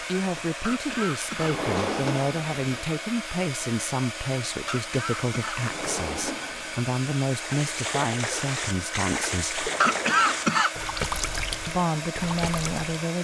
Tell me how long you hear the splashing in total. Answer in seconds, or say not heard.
6 s.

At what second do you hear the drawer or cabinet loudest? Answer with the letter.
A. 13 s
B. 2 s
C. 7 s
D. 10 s
B.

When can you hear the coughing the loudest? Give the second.
10 s.